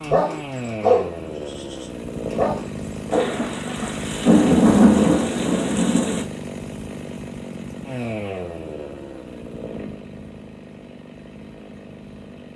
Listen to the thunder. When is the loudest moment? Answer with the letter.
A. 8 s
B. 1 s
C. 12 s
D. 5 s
D.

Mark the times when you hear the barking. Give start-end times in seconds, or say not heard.
0.0-3.3.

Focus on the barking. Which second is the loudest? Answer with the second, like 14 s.
1 s.